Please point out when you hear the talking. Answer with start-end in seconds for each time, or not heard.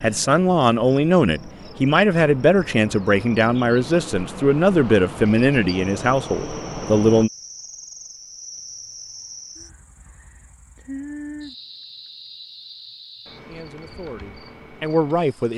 0.0-7.3, 13.4-15.5.